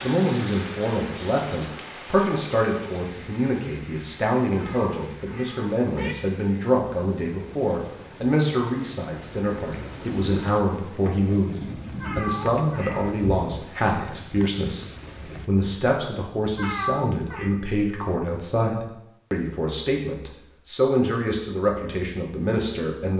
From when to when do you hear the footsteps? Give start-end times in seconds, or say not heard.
not heard.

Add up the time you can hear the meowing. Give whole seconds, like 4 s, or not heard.
4 s.